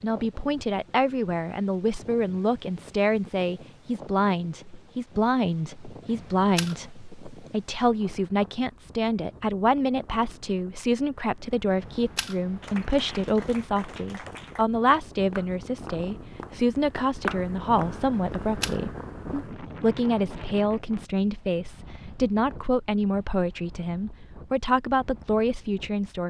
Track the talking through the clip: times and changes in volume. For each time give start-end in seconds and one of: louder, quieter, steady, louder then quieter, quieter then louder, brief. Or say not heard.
0.0-26.2 steady.